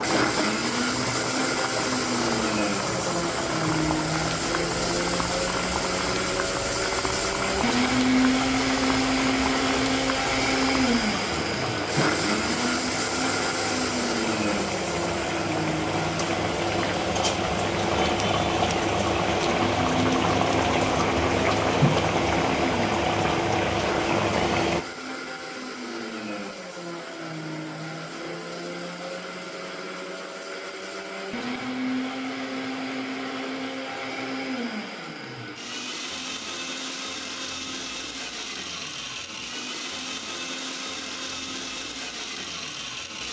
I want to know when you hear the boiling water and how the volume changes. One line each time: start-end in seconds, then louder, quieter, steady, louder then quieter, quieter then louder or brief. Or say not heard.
0.0-24.9 louder.